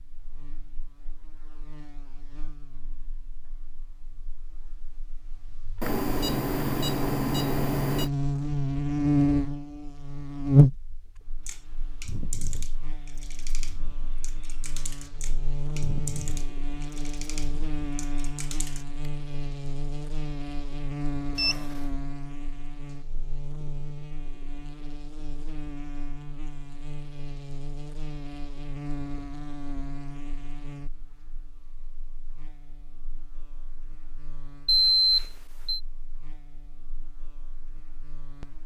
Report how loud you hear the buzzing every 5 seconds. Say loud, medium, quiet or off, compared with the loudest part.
quiet, loud, loud, medium, medium, quiet, quiet, quiet.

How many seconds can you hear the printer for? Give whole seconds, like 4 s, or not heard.
not heard.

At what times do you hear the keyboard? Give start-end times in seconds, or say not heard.
11.4-19.1.